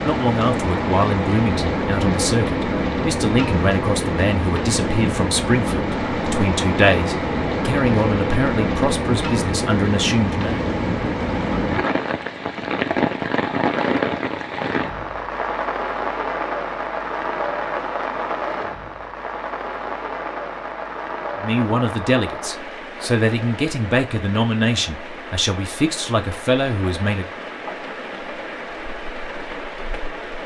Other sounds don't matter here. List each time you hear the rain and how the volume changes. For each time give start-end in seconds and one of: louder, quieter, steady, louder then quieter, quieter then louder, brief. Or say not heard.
0.0-30.4 quieter.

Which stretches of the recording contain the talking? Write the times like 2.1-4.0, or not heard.
0.1-10.6, 21.4-27.2.